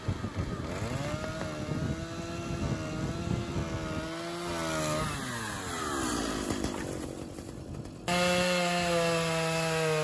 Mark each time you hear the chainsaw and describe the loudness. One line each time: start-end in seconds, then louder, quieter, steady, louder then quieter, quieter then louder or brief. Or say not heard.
0.0-9.9 louder.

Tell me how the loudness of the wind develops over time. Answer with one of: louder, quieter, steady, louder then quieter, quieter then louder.
quieter.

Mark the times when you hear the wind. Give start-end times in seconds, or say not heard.
0.0-8.5.